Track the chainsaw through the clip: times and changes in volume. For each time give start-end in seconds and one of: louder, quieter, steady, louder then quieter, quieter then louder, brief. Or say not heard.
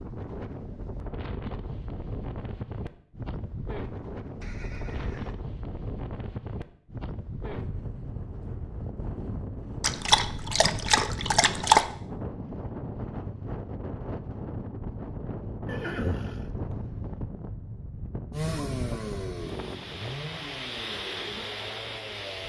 18.3-22.4 quieter.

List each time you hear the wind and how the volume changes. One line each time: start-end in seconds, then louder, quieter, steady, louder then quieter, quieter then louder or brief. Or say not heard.
0.0-22.4 steady.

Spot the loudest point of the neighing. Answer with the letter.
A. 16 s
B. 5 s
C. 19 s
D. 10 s
A.